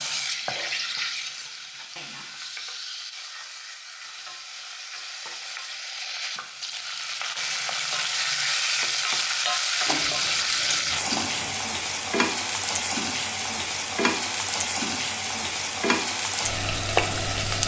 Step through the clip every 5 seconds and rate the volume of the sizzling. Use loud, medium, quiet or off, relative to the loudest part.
medium, loud, loud, loud.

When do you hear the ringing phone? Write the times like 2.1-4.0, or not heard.
not heard.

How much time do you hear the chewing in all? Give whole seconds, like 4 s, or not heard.
2 s.